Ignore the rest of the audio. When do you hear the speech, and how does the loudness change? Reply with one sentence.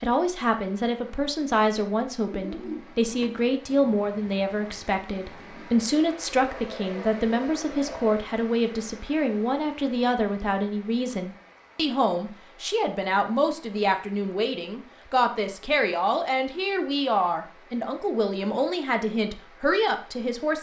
You can hear the speech from 0.0 to 20.5 s, at a steady volume.